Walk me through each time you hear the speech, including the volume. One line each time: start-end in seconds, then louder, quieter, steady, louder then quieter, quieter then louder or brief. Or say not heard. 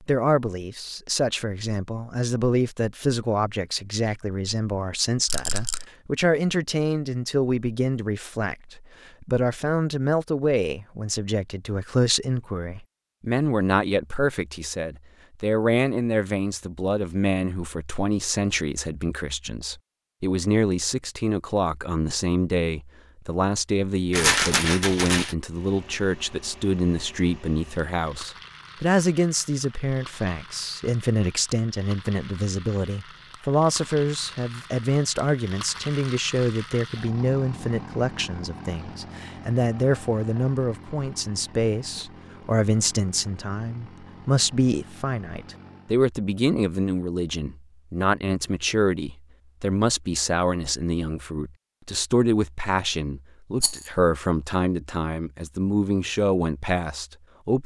0.0-57.6 steady.